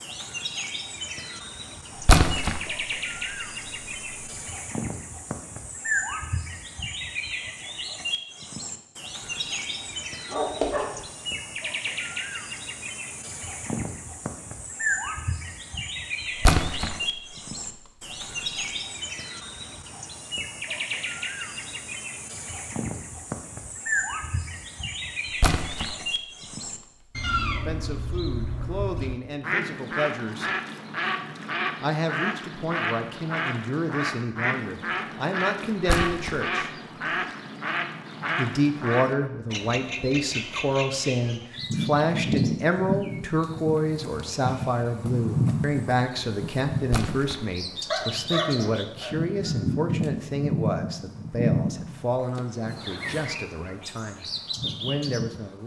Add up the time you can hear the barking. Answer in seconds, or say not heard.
2 s.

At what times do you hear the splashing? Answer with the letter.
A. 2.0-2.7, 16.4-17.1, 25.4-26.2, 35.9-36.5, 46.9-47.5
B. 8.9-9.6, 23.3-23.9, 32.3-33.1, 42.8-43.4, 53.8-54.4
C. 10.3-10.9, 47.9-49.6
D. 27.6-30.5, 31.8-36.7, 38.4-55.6
A.